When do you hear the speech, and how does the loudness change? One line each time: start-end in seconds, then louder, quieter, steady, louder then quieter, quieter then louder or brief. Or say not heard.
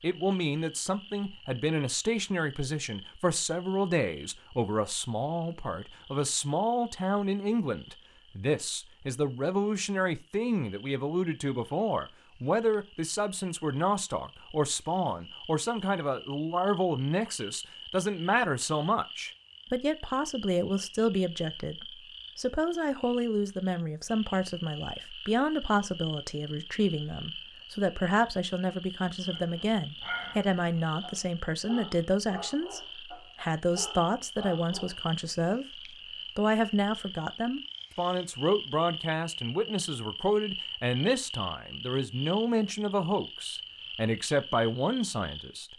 0.0-35.6 steady
36.4-45.7 steady.